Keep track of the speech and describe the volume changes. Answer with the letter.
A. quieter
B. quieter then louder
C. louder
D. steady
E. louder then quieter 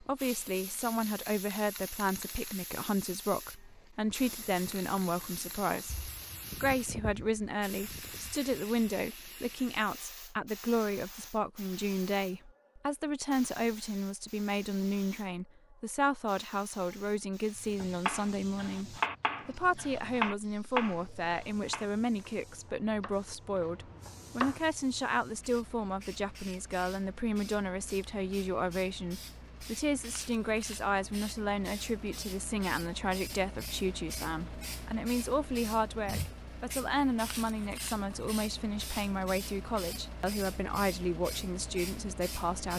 D.